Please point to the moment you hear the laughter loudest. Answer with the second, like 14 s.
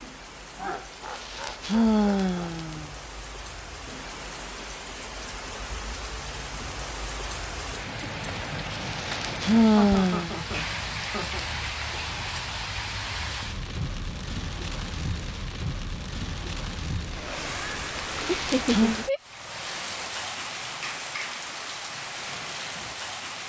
19 s.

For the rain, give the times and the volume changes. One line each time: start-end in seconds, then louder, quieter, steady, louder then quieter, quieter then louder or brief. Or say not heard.
0.0-23.4 louder.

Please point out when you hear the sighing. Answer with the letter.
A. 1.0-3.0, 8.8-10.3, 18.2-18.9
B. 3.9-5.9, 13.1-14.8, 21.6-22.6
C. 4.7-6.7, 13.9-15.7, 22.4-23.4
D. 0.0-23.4
A.